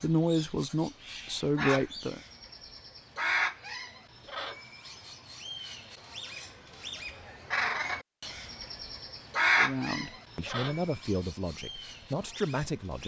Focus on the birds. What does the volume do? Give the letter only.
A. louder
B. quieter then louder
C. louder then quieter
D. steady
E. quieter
C.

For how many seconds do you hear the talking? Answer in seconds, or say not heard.
6 s.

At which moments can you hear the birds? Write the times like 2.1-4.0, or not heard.
0.0-13.0.